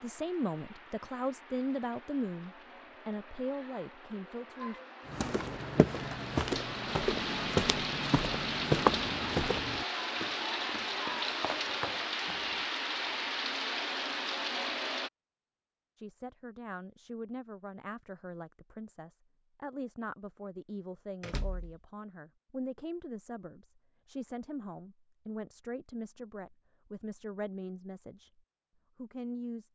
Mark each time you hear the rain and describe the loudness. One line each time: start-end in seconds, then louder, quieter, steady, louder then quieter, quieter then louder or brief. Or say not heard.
0.0-15.1 louder.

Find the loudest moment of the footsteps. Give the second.
9 s.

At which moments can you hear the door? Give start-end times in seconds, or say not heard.
21.2-21.8.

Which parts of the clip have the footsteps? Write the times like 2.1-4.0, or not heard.
5.0-12.7.